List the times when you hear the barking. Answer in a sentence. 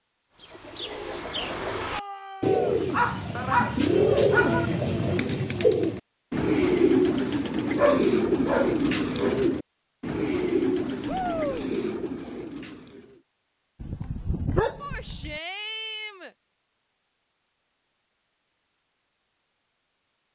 You can hear the barking from 2.9 to 4.7 s, from 7.8 to 9.4 s and from 13.8 to 15.4 s.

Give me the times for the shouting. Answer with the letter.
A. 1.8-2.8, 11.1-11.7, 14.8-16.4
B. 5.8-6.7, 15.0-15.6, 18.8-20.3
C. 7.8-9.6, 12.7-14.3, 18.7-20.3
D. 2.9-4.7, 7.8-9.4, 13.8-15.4
A.